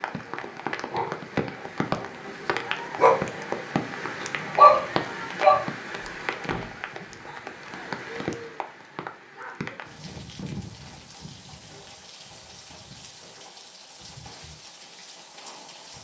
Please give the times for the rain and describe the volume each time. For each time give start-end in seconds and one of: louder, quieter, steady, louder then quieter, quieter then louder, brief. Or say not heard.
0.0-15.9 quieter.